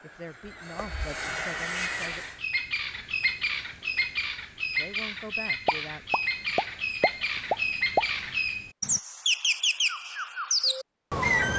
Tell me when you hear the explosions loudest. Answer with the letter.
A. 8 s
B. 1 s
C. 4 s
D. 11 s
A.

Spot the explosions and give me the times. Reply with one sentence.
You can hear the explosions from 5.7 to 8.1 s.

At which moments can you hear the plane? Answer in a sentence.
The plane can be heard from 0.0 to 2.4 s.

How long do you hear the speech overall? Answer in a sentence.
You can hear the speech for 4 seconds altogether.